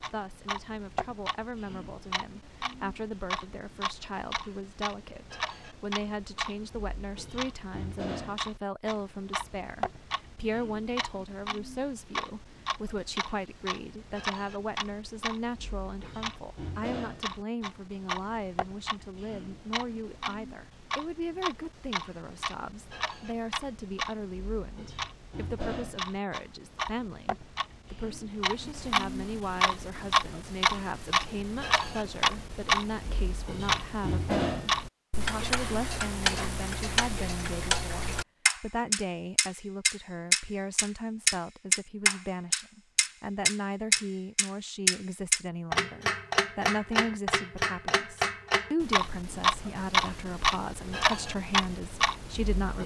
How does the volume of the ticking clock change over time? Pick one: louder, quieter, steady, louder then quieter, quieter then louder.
louder.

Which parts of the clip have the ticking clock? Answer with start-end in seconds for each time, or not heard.
0.0-52.8.